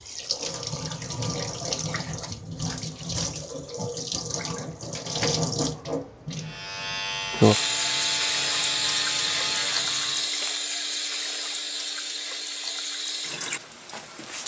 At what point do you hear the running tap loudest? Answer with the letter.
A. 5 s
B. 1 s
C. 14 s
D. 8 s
D.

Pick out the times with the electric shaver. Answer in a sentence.
You can hear the electric shaver from 6.4 to 10.3 s.